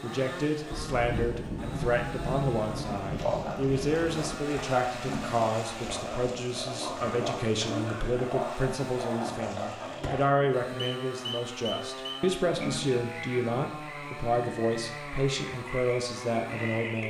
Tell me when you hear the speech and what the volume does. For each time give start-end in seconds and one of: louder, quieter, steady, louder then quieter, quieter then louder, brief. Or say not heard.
0.0-17.0 steady.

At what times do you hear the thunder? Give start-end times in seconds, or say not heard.
0.7-4.4.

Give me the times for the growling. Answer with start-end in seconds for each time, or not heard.
4.9-5.5, 12.4-13.1.